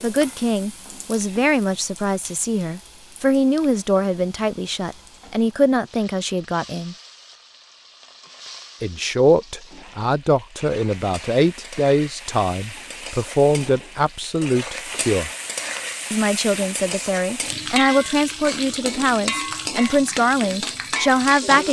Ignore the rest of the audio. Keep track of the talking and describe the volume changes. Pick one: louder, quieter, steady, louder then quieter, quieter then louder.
steady.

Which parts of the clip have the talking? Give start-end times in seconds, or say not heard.
0.0-7.0, 8.8-15.3, 16.1-21.6.